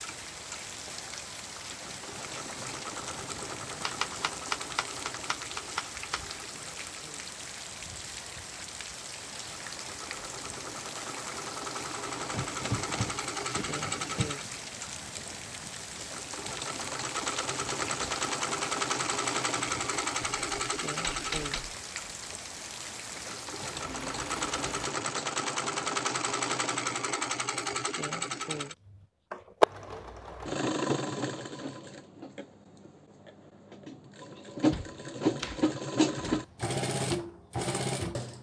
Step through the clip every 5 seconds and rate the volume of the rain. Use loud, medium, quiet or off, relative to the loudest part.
loud, loud, loud, loud, loud, off, off, off.